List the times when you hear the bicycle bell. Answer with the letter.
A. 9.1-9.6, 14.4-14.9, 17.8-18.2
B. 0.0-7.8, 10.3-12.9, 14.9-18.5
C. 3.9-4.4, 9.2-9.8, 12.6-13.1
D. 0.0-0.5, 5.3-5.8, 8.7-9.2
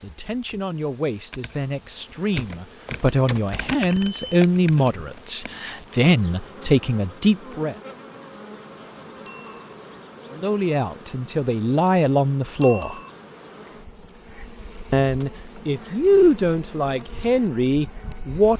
C.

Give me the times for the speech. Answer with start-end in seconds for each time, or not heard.
0.0-7.8, 10.3-12.9, 14.9-18.5.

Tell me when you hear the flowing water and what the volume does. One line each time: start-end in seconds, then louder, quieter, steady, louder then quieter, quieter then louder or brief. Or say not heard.
not heard.